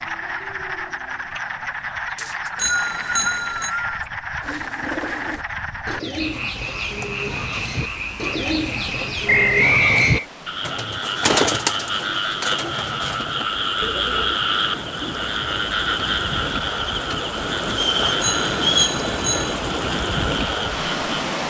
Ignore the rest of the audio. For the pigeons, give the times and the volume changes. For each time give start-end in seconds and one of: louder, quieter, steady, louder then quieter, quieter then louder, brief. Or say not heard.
4.4-14.3 louder then quieter.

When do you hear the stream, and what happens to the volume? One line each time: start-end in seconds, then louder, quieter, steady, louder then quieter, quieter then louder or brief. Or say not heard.
6.5-21.4 louder.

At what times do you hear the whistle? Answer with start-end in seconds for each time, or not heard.
2.1-4.0, 9.2-10.2, 17.7-18.9.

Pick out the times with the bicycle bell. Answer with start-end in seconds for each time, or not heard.
2.5-3.7, 18.2-19.6.